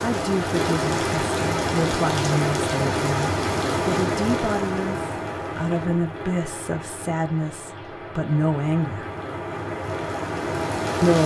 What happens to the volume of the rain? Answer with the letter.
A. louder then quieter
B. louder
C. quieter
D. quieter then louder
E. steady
D.